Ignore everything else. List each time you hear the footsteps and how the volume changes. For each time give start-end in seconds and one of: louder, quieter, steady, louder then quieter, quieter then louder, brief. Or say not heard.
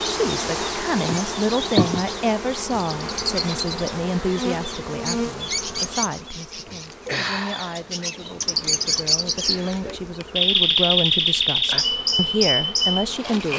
not heard.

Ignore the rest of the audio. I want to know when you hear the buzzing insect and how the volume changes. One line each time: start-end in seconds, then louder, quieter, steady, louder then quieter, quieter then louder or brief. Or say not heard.
0.0-13.5 quieter.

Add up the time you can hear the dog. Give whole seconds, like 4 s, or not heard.
not heard.